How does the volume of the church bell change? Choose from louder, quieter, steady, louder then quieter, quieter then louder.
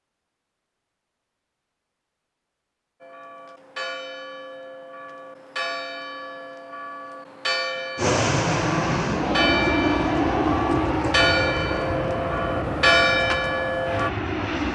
louder.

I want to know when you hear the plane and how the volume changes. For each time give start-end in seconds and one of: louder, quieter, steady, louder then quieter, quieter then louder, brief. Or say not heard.
8.0-14.7 quieter.